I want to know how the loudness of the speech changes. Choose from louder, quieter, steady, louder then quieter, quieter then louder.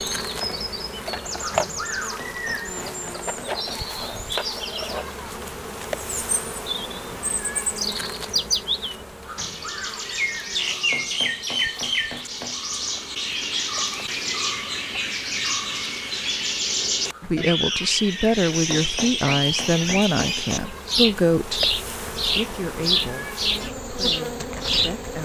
quieter.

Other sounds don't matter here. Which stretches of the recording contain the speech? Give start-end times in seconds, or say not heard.
17.2-25.2.